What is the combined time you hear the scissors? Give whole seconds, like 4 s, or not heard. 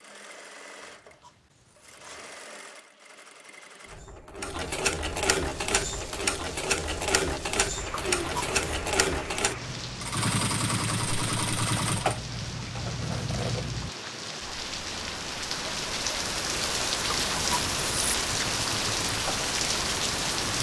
4 s.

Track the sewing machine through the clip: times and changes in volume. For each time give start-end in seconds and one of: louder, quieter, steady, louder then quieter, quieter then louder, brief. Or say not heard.
0.0-13.9 louder
18.4-20.5 brief.